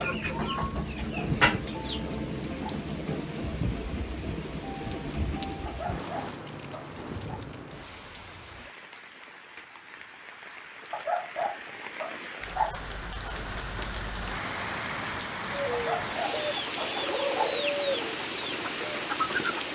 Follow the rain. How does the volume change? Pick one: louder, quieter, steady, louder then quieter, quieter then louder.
quieter then louder.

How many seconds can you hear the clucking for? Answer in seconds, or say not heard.
6 s.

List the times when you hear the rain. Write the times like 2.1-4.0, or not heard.
0.0-19.6.